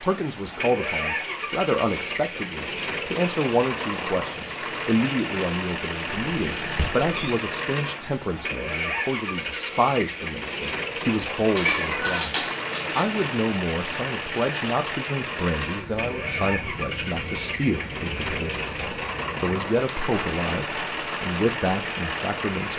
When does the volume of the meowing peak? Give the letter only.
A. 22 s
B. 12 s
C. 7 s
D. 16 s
B.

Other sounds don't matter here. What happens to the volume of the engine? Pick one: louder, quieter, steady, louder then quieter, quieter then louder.
steady.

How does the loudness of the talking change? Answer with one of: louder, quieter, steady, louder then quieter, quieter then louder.
steady.